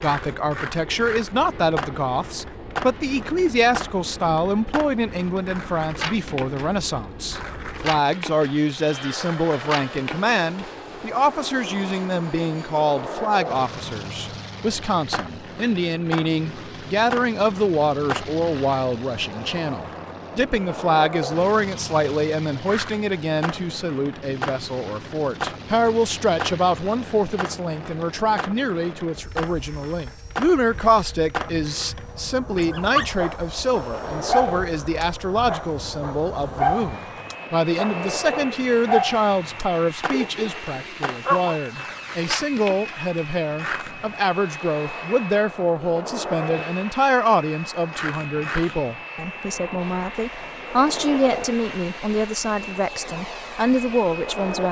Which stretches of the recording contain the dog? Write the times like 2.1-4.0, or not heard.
32.5-41.6.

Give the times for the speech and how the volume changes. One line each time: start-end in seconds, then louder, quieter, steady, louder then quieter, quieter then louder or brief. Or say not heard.
0.0-54.6 steady.